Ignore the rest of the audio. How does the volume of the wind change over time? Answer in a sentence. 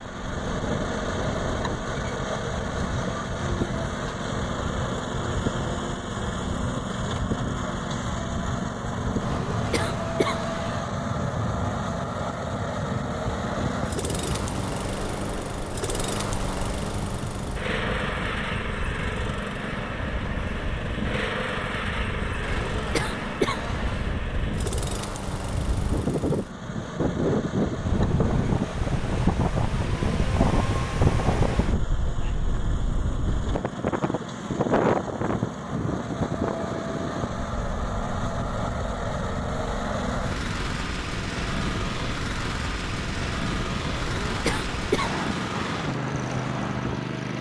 The volume of the wind goes up, then down.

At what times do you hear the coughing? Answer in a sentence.
You can hear the coughing from 9.2 to 10.8 s, from 22.4 to 24.1 s and from 43.9 to 45.2 s.